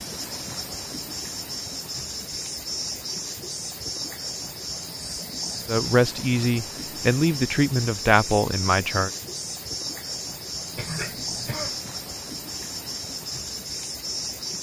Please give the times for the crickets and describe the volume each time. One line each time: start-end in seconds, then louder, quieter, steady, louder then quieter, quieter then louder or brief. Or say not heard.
0.0-14.5 steady.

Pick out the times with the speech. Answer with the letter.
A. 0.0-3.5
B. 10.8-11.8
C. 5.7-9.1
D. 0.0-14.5
C.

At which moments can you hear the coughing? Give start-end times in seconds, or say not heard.
10.8-11.8.